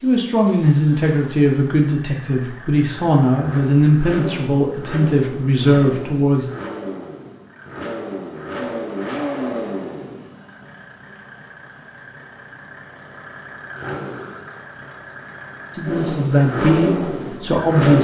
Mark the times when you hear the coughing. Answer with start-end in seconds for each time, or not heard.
not heard.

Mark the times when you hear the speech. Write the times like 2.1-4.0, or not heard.
0.0-6.5, 15.8-17.9.